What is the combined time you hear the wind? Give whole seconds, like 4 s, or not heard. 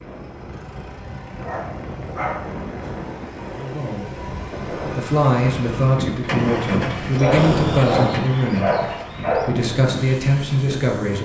11 s.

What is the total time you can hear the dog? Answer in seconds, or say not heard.
4 s.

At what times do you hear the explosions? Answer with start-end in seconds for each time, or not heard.
7.3-8.2.